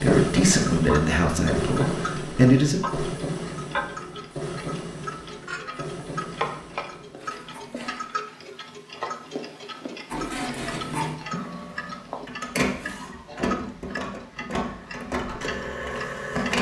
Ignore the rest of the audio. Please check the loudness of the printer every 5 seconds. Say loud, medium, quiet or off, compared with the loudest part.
loud, medium, loud, loud.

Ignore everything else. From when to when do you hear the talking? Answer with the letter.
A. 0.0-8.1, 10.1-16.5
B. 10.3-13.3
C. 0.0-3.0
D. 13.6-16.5
C.